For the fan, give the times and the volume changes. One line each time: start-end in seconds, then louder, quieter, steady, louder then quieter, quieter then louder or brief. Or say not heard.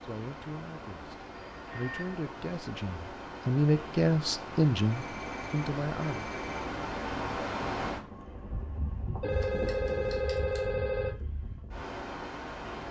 0.0-12.8 louder then quieter.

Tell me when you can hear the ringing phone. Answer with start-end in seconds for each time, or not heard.
1.4-2.2, 4.9-6.5, 9.2-11.2.